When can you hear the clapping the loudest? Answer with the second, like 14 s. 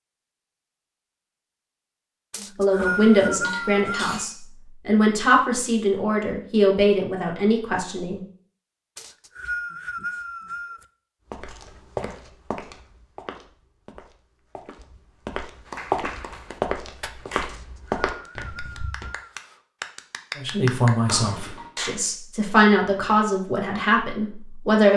21 s.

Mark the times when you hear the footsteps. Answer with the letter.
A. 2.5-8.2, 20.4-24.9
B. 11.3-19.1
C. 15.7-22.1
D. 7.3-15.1
B.